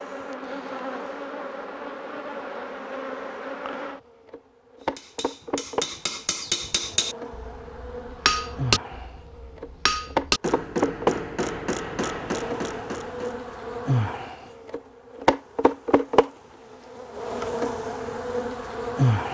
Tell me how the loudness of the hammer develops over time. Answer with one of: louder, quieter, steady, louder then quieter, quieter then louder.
steady.